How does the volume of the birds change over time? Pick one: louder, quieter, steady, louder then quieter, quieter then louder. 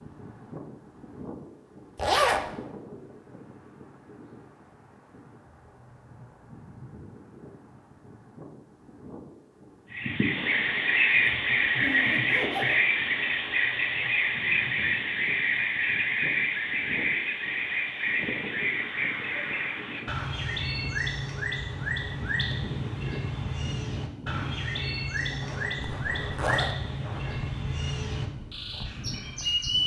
quieter.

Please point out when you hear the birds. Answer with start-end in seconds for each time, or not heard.
9.9-29.8.